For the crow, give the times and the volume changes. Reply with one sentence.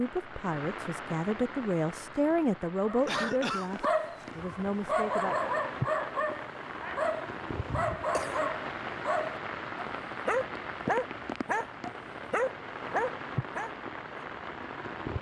The crow can't be heard in this clip.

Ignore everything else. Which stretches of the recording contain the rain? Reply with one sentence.
You can hear the rain from 0.0 to 15.1 s.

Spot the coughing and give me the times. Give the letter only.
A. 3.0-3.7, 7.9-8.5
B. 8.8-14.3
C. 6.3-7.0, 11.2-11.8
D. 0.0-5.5
A.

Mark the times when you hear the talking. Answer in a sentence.
You can hear the talking from 0.0 to 5.5 s.